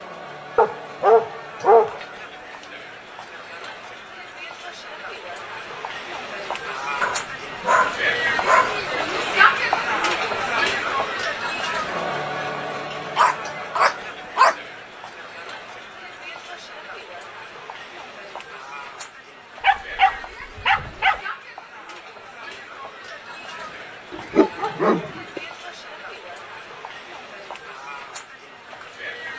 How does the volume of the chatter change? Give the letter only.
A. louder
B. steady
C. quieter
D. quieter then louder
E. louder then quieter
E.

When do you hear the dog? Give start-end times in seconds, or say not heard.
0.6-2.0, 7.0-8.8, 13.2-14.6, 19.6-21.2, 24.1-25.4.